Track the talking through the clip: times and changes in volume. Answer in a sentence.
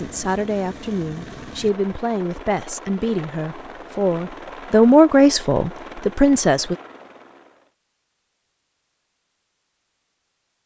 You can hear the talking from 0.0 to 6.8 s, getting louder.